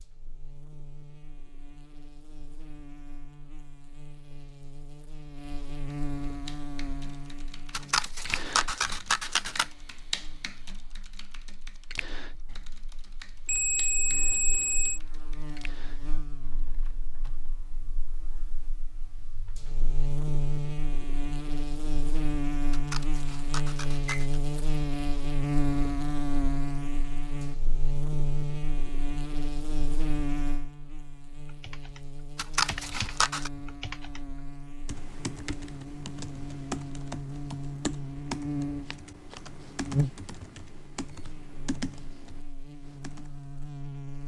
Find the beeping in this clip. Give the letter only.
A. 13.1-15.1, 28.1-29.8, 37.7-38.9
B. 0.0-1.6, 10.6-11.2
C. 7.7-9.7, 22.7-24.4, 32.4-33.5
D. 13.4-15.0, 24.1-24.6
D.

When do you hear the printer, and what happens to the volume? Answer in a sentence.
The printer can't be heard in this clip.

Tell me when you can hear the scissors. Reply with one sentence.
The scissors can be heard from 7.7 to 9.7 s, from 22.7 to 24.4 s and from 32.4 to 33.5 s.